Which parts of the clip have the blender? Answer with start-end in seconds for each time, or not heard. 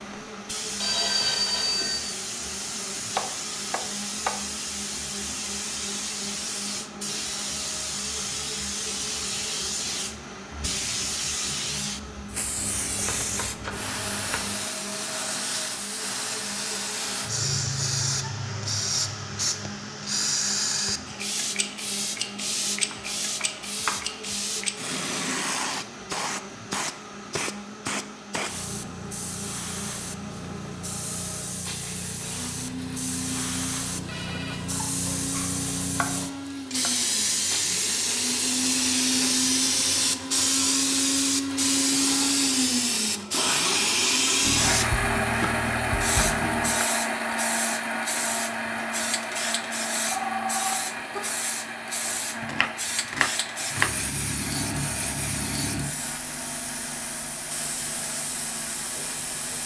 0.0-59.6.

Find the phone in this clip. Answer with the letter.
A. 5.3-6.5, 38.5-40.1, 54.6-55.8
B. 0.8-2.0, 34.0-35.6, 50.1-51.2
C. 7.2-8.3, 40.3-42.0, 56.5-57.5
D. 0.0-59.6
B.